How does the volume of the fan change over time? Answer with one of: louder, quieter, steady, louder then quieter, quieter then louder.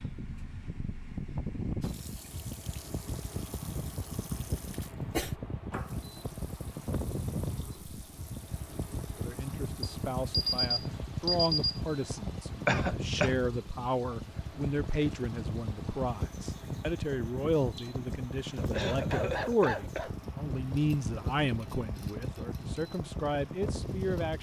steady.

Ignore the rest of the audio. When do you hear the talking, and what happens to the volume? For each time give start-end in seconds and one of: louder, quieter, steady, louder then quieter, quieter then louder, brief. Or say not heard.
9.2-24.3 steady.